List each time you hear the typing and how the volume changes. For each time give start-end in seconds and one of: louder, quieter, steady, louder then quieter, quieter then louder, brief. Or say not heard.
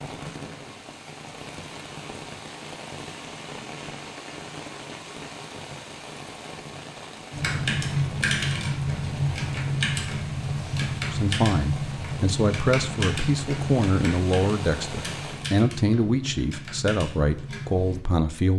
7.3-18.0 quieter.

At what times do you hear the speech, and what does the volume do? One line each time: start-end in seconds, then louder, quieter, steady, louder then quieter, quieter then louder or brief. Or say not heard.
11.1-18.5 steady.